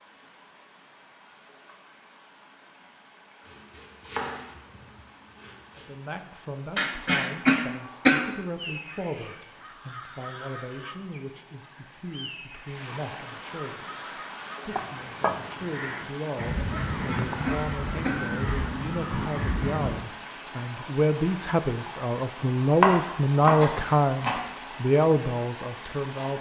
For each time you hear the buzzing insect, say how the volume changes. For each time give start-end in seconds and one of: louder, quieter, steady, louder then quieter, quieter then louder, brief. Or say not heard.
not heard.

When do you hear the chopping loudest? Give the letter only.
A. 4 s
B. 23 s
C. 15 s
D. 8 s
B.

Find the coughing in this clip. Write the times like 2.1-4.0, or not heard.
6.8-8.3, 16.8-18.2.